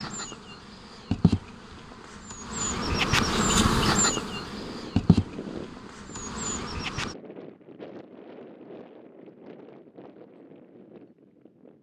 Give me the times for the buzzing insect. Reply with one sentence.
You can hear the buzzing insect from 0.0 to 7.2 s.